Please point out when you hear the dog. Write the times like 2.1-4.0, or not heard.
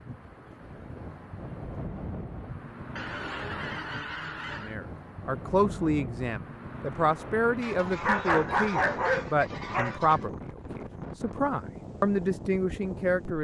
8.0-10.0.